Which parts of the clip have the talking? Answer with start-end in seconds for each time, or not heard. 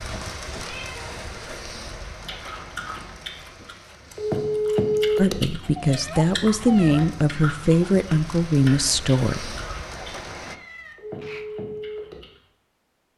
5.2-9.6.